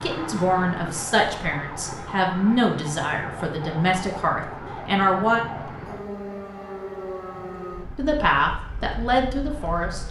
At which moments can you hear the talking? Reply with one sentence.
You can hear the talking from 0.0 to 5.5 s and from 8.0 to 10.0 s.